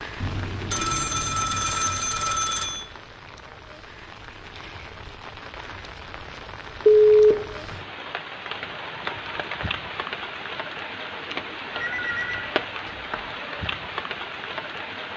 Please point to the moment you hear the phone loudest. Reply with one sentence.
The loudest moment of the phone is at 7 seconds.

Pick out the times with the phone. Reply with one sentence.
The phone can be heard from 0.2 to 2.8 s, from 6.8 to 7.8 s and from 11.8 to 13.2 s.